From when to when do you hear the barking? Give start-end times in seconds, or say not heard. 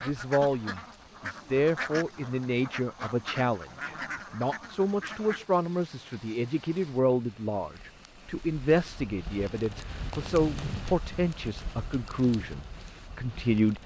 not heard.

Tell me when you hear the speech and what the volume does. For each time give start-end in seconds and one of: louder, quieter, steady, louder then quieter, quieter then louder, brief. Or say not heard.
0.0-13.8 steady.